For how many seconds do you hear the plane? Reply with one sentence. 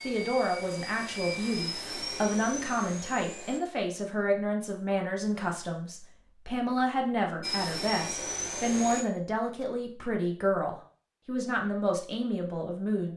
The plane can be heard for 5 seconds in total.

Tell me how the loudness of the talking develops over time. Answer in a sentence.
The loudness of the talking stays about the same.